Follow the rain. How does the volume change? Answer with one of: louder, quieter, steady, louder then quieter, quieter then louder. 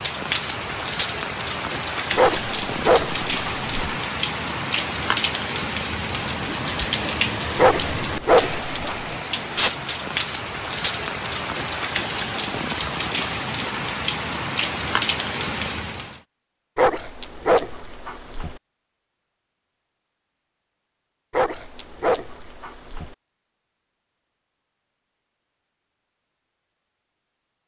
steady.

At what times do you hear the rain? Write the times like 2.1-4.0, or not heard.
0.0-16.2.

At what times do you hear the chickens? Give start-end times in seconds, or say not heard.
not heard.